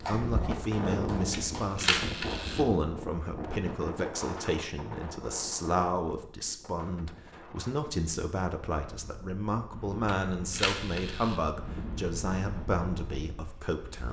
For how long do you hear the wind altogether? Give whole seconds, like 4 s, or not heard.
14 s.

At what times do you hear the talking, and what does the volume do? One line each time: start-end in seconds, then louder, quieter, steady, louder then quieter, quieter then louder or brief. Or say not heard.
0.0-14.0 steady.